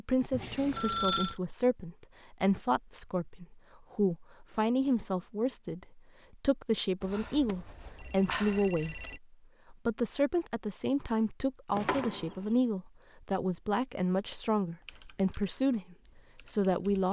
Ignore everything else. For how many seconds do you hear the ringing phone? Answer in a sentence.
You can hear the ringing phone for 4 seconds altogether.